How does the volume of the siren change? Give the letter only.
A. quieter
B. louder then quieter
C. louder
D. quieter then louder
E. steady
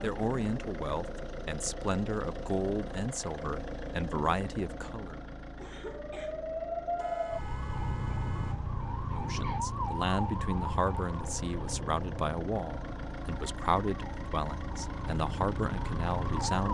D.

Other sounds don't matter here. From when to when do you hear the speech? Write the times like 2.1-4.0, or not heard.
0.0-5.2, 9.1-16.7.